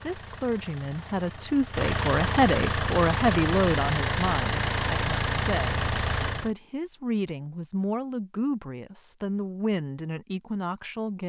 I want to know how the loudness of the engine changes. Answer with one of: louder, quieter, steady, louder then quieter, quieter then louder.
louder.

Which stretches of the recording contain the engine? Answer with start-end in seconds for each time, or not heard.
0.0-6.5.